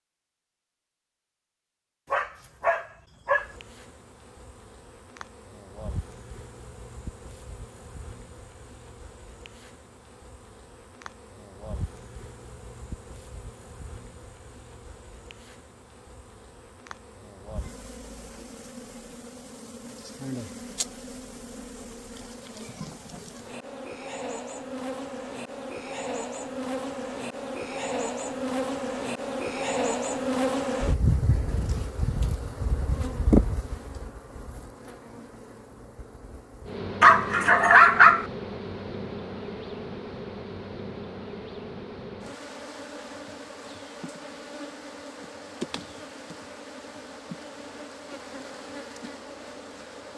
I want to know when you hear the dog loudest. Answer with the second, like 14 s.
38 s.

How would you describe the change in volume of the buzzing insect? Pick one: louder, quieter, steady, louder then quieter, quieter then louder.
louder then quieter.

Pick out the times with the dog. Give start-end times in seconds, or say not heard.
2.1-3.5, 37.0-38.2.